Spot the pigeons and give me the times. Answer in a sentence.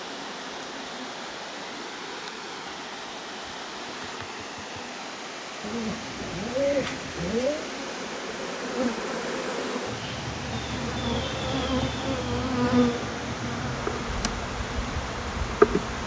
You can hear the pigeons from 5.6 to 7.7 s.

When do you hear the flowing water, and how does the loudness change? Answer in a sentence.
The flowing water can be heard from 0.0 to 16.0 s, at a steady volume.